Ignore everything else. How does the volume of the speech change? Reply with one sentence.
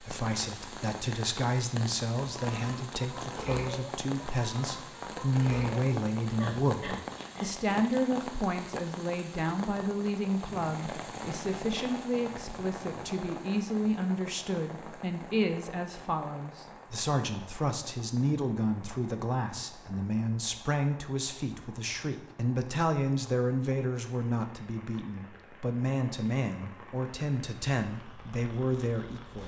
The volume of the speech stays about the same.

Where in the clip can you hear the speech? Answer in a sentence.
The speech can be heard from 0.0 to 29.4 s.